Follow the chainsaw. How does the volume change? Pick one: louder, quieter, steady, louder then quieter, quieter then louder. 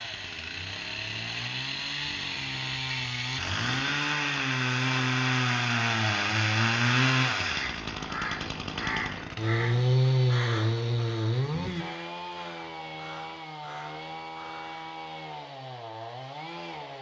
louder then quieter.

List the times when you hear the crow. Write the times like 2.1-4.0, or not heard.
7.5-15.0.